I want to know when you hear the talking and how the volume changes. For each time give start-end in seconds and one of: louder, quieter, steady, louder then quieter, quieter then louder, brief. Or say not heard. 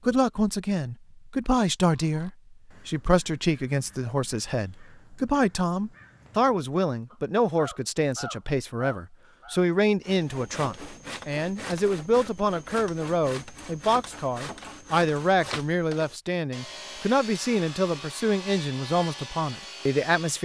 0.1-20.3 steady.